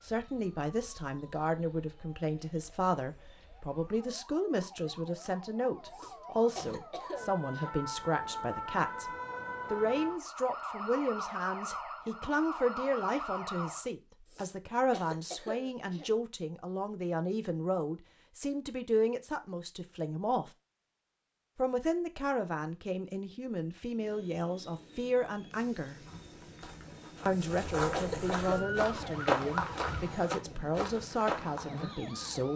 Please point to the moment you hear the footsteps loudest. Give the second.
29 s.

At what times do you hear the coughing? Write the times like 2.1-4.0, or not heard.
5.9-7.7, 14.2-16.1, 27.3-29.1.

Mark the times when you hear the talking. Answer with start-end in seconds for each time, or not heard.
0.0-9.1, 9.7-20.5, 21.6-26.0, 27.2-32.5.